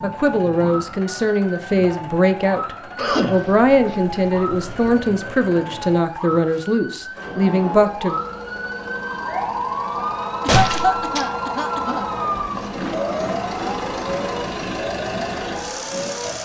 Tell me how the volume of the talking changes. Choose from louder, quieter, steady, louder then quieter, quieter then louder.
steady.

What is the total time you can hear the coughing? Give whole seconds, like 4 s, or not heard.
4 s.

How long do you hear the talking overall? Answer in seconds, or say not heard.
8 s.